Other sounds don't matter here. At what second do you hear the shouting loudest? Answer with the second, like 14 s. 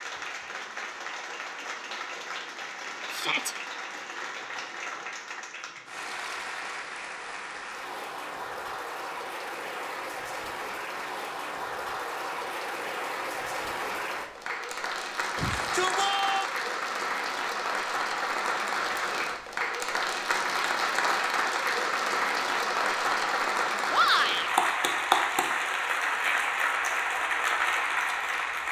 24 s.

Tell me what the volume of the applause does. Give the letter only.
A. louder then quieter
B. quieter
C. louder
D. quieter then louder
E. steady
C.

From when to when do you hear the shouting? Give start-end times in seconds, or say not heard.
3.1-3.5, 15.3-16.5, 23.9-24.5.